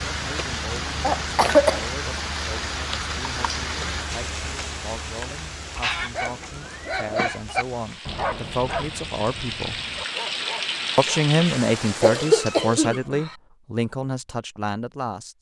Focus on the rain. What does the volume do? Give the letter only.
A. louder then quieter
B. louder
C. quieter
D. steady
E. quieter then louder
E.